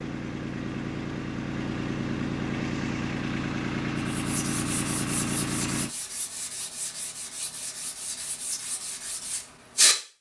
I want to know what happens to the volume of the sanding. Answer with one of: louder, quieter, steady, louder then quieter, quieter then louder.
steady.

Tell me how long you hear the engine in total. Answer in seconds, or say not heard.
6 s.